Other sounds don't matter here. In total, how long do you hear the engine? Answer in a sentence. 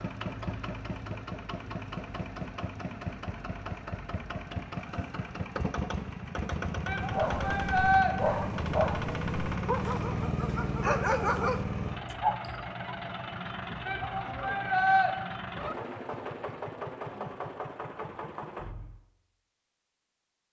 You can hear the engine for 19 seconds altogether.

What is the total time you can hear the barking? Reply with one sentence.
You can hear the barking for 6 seconds altogether.